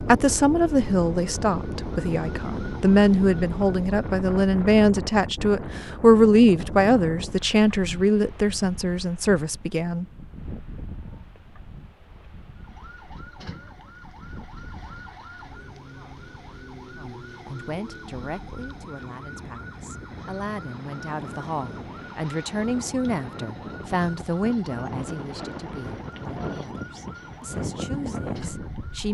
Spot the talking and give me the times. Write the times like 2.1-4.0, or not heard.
0.0-10.1, 16.9-29.0.